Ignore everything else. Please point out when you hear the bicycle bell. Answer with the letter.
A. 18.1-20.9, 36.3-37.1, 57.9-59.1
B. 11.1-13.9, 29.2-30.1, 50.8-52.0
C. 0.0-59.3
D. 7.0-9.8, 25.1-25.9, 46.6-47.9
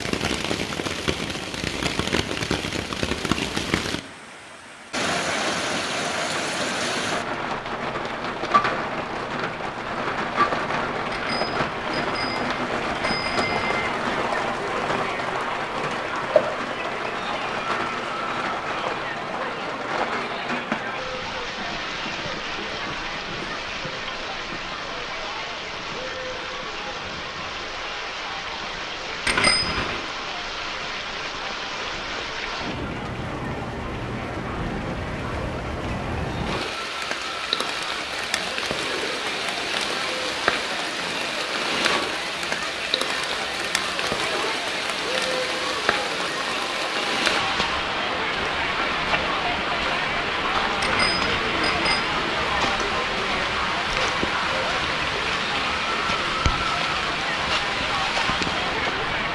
B.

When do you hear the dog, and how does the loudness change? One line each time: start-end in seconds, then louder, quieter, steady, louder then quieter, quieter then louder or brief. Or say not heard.
not heard.